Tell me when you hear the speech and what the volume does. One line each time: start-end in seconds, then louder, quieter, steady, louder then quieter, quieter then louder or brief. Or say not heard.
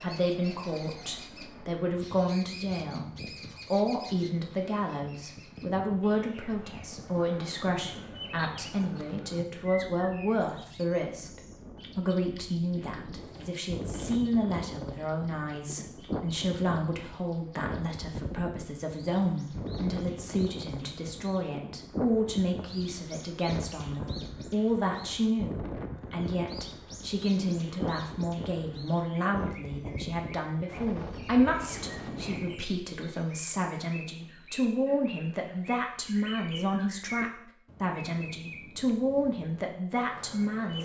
0.0-40.8 steady.